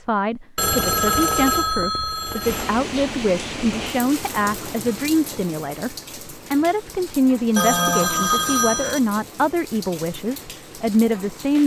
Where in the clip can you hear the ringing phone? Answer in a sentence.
The ringing phone can be heard from 0.6 to 2.8 s and from 7.5 to 9.0 s.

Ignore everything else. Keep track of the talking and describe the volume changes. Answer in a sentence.
The volume of the talking stays about the same.